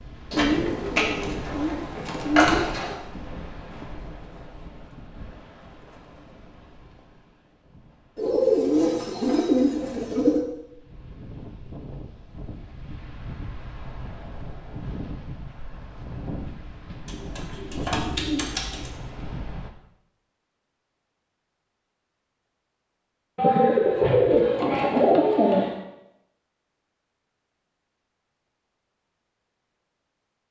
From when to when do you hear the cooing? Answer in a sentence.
The cooing can be heard from 0.3 to 3.0 s, from 8.2 to 10.4 s, from 17.1 to 18.9 s and from 23.4 to 25.8 s.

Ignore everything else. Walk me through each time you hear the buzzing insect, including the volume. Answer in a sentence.
You can't hear the buzzing insect here.